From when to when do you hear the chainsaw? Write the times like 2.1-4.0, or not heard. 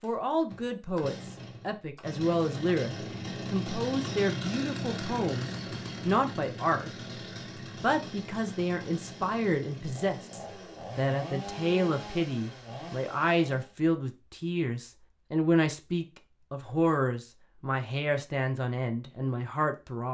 0.0-13.7.